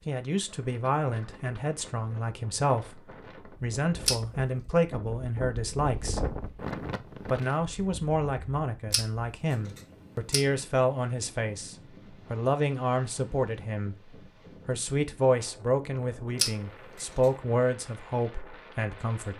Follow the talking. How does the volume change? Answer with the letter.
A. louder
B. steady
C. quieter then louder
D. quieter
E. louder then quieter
B.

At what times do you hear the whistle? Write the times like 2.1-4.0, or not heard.
not heard.